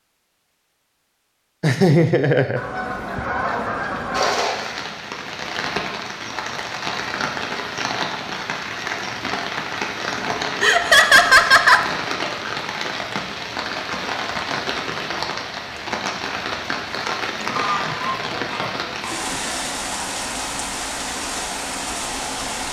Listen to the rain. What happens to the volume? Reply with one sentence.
The volume of the rain stays about the same.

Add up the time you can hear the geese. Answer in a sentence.
The geese can be heard for 3 seconds in total.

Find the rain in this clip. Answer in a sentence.
The rain can be heard from 4.1 to 22.6 s.